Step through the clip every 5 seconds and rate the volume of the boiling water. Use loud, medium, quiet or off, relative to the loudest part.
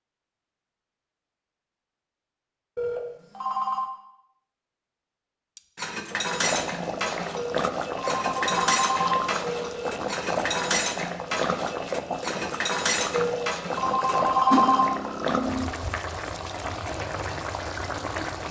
off, loud, loud, loud.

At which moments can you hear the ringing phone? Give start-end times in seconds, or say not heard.
2.8-3.9, 7.3-9.9, 13.1-14.8.